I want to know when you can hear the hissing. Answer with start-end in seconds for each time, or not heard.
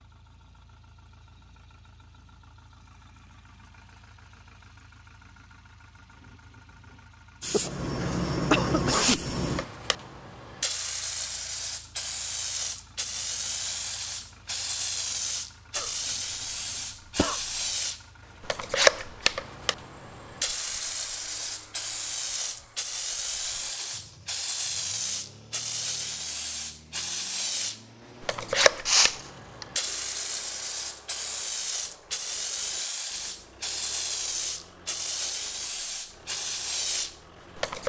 7.4-37.8.